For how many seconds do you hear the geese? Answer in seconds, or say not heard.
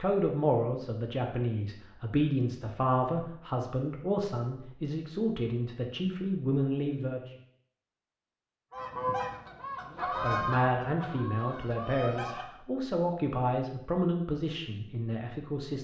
4 s.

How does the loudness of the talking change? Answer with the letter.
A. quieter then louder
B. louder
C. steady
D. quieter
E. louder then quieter
C.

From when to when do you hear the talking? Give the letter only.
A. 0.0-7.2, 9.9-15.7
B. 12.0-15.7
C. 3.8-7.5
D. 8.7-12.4
A.